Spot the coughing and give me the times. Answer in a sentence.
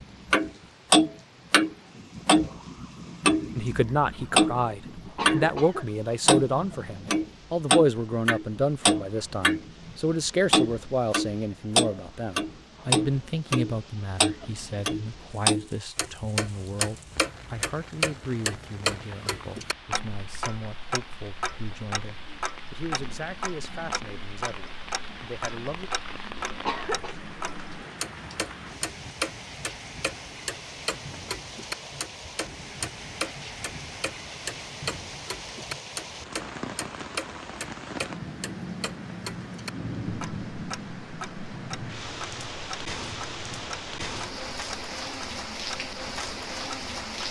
The coughing can be heard from 5.2 to 5.8 s and from 26.6 to 27.1 s.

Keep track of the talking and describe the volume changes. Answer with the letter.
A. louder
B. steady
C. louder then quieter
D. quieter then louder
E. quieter
E.